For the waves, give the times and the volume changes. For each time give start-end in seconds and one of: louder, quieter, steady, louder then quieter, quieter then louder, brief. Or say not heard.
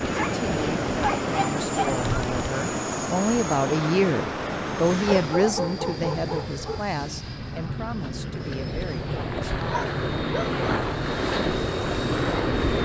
0.0-12.8 quieter then louder.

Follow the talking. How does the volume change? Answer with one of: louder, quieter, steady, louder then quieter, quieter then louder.
louder then quieter.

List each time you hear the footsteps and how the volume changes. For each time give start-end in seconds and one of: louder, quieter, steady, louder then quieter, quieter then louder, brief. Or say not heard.
not heard.